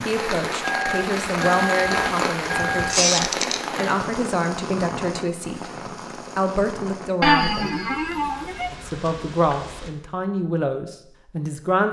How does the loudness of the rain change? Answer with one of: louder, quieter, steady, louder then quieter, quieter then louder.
quieter.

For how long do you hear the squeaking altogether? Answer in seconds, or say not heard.
2 s.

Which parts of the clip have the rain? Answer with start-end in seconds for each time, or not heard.
0.0-9.9.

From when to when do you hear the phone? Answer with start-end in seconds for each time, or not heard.
0.6-3.0.